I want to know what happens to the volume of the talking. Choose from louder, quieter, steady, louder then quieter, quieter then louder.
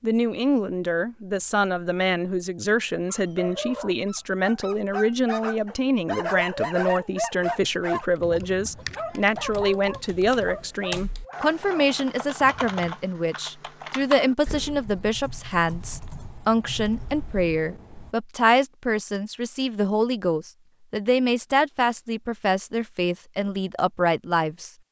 steady.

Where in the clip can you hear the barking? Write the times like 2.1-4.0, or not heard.
3.0-12.8.